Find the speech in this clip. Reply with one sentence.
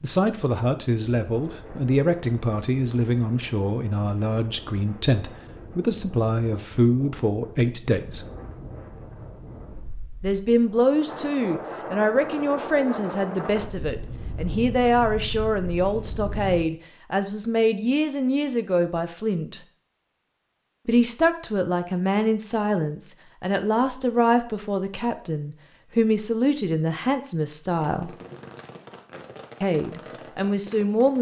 You can hear the speech from 0.0 to 8.2 s, from 10.2 to 19.6 s, from 20.9 to 28.1 s and from 29.6 to 31.1 s.